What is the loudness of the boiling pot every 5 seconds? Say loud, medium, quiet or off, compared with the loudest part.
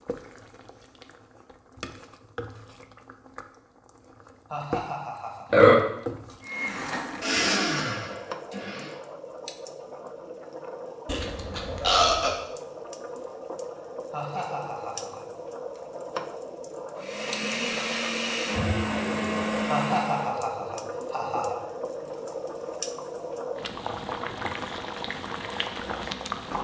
medium, medium, medium, loud, loud, loud.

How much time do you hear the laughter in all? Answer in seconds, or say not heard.
4 s.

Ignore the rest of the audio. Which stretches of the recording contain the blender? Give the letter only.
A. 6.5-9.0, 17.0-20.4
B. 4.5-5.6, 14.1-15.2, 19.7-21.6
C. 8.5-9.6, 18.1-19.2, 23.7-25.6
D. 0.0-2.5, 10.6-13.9
A.